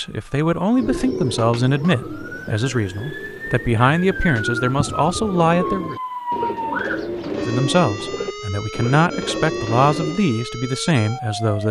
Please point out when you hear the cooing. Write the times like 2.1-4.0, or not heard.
0.8-10.2.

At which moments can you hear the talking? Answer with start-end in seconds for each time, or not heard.
0.0-6.0, 7.5-11.6.